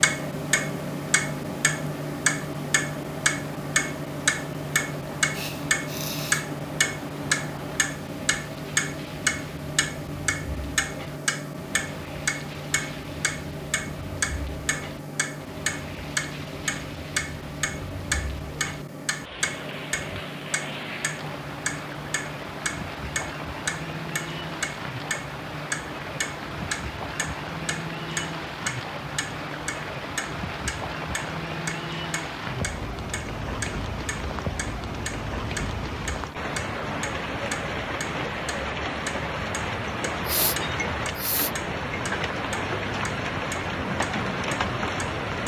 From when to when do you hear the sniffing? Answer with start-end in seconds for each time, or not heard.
5.3-6.5, 40.2-41.5.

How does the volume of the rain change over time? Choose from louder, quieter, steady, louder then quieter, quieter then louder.
louder.